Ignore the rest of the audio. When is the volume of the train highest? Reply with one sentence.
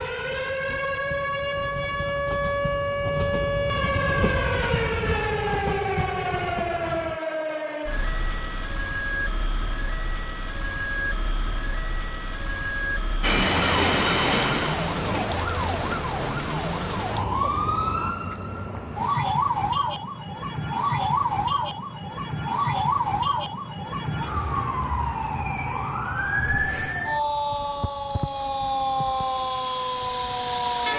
The loudest moment of the train is at 14 seconds.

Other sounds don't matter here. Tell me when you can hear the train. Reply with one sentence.
The train can be heard from 0.0 to 7.2 s and from 13.2 to 15.2 s.